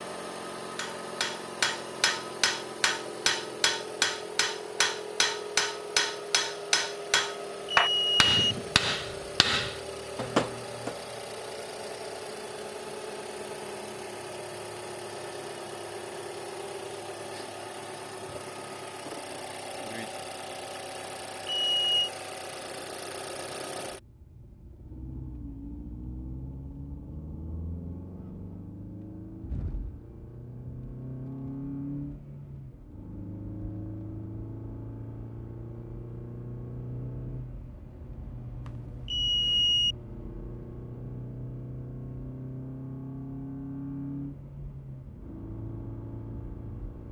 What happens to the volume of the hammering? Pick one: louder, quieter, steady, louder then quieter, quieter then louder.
steady.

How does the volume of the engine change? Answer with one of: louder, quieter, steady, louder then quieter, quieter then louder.
steady.